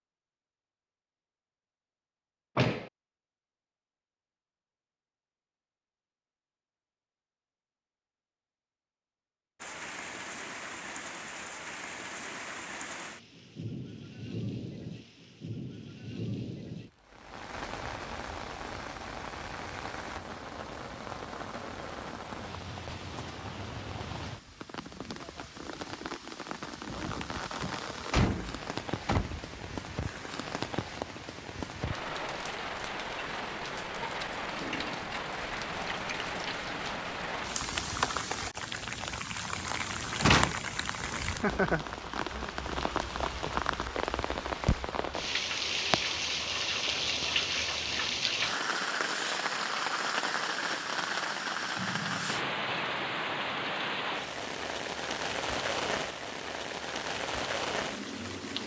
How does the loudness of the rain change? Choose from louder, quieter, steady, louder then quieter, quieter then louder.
louder.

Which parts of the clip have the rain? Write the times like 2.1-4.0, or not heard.
9.6-58.6.